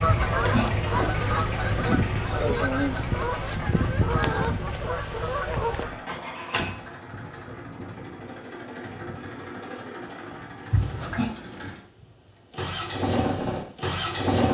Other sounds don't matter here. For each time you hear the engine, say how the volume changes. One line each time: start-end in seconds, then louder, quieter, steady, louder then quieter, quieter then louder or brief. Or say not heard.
0.0-14.5 quieter then louder.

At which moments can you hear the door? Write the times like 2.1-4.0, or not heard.
0.3-1.2, 6.0-6.8, 10.7-11.3.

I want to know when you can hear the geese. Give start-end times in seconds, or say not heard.
0.0-6.8.